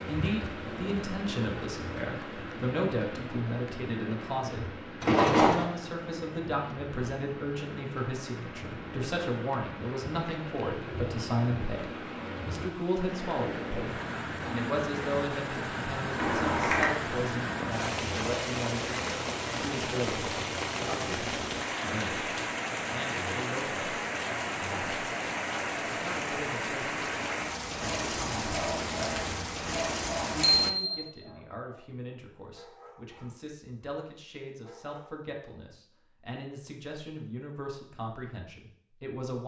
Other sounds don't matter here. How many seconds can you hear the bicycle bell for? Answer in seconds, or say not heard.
2 s.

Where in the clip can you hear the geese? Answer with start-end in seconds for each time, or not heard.
not heard.